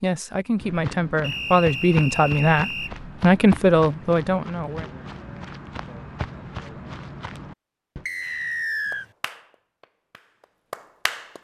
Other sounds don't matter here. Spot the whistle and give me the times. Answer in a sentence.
The whistle can be heard from 1.2 to 3.0 s and from 8.1 to 9.1 s.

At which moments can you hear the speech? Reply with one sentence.
You can hear the speech from 0.0 to 4.8 s.